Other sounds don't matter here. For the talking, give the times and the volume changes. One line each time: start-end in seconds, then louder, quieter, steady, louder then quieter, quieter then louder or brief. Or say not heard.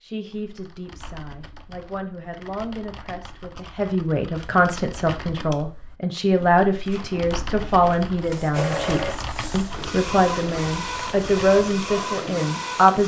0.0-13.0 louder.